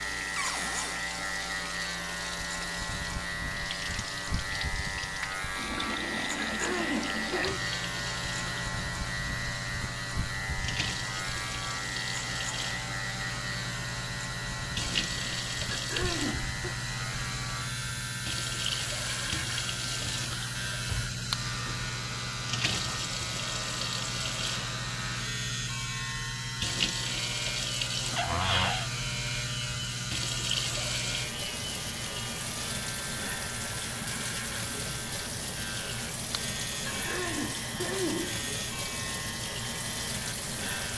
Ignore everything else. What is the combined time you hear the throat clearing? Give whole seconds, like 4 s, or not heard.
4 s.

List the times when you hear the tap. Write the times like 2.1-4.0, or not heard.
0.0-40.9.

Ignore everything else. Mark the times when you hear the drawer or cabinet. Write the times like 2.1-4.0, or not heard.
0.3-1.0, 19.9-21.1, 28.1-28.9.